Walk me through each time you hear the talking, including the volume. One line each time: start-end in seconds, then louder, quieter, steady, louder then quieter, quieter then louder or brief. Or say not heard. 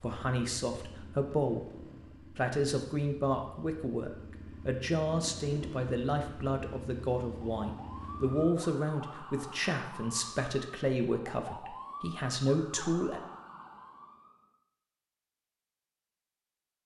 0.0-1.7 brief
2.4-13.2 steady.